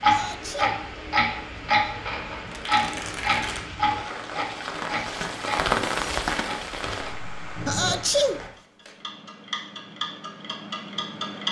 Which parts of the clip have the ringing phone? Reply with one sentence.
You can't hear the ringing phone here.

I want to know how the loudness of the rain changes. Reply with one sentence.
The loudness of the rain goes up, then down.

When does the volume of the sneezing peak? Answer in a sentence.
The volume of the sneezing peaks at 8 seconds.